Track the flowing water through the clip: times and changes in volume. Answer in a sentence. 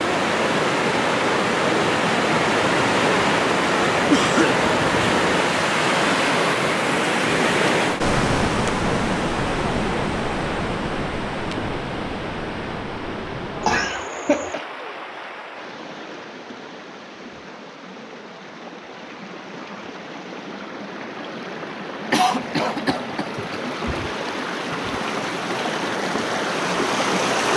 You can hear the flowing water from 0.0 to 27.5 s, getting quieter then louder.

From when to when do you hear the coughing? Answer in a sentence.
The coughing can be heard from 4.1 to 5.2 s, from 13.6 to 14.6 s and from 22.1 to 24.1 s.